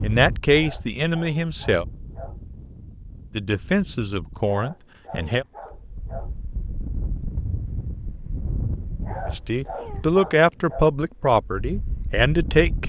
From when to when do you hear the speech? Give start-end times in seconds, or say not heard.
0.0-1.9, 3.4-5.5, 9.2-12.8.